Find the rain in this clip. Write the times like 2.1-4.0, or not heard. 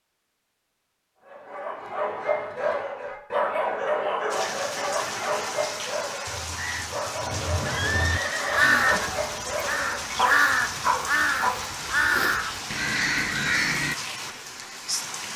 4.3-15.3.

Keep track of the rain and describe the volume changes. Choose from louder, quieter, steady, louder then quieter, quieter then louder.
steady.